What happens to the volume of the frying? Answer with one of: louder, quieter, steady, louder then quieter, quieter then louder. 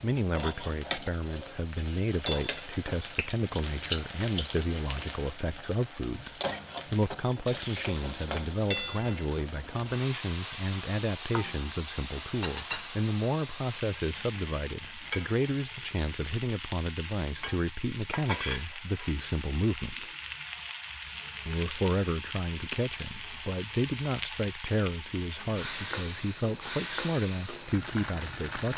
steady.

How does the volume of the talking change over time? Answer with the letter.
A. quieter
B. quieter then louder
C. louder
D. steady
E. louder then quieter
D.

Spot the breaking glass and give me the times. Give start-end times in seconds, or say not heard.
not heard.